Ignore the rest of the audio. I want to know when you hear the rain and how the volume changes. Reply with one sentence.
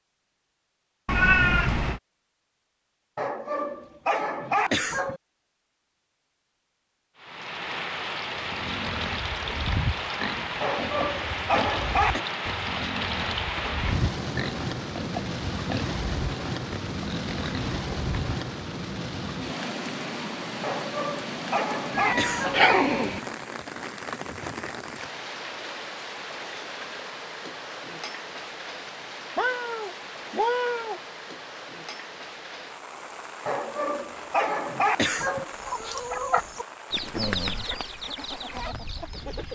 The rain can be heard from 7.2 to 39.5 s, getting quieter.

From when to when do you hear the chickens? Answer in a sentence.
The chickens can be heard from 35.5 to 39.5 s.